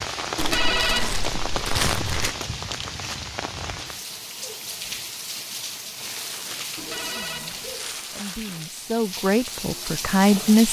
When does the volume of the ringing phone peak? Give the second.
1 s.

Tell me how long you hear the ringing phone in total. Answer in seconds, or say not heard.
2 s.